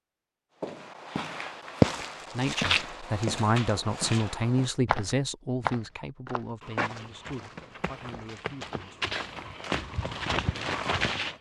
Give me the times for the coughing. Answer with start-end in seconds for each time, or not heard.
not heard.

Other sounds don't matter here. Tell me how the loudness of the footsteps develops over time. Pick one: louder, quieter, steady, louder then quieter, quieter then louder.
quieter then louder.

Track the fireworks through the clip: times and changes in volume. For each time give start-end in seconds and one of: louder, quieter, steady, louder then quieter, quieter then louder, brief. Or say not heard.
not heard.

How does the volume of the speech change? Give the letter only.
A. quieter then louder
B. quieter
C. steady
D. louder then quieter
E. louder
B.